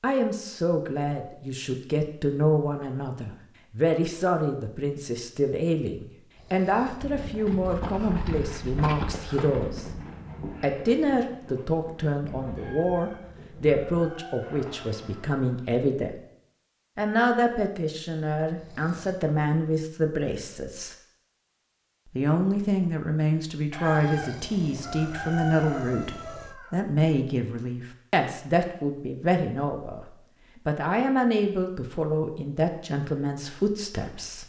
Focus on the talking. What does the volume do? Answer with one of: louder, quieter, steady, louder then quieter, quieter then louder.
steady.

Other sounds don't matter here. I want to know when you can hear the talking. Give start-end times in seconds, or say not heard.
0.0-9.8, 10.6-16.2, 16.9-20.9, 22.1-34.4.